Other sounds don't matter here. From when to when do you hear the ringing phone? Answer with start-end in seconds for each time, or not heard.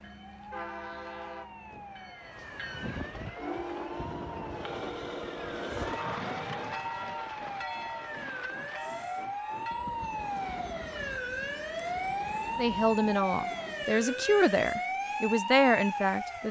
4.6-6.5.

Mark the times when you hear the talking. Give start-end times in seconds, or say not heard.
12.6-16.4.